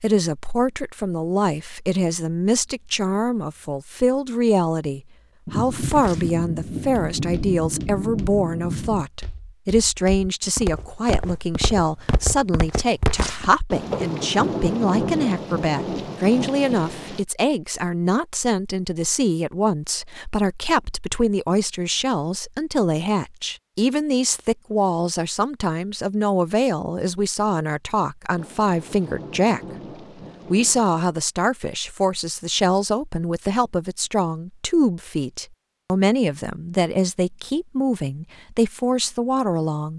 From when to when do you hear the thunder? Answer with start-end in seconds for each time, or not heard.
5.5-9.1, 13.7-17.2, 28.4-30.9.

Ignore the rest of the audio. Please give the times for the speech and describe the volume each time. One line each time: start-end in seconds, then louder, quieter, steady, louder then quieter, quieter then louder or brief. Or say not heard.
0.0-29.6 steady
30.5-39.9 steady.